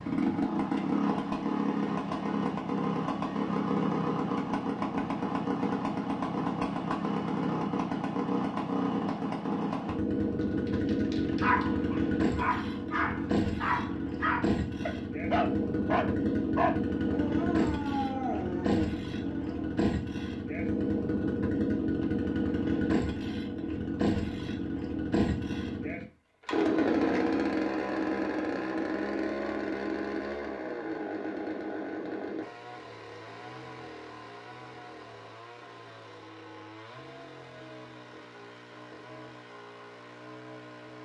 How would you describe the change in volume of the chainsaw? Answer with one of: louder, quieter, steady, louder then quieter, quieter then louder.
quieter.